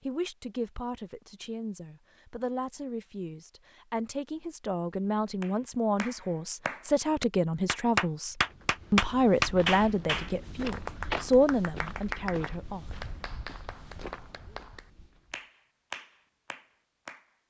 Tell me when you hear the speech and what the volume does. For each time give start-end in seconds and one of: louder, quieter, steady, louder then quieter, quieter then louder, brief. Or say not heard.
0.0-13.1 louder.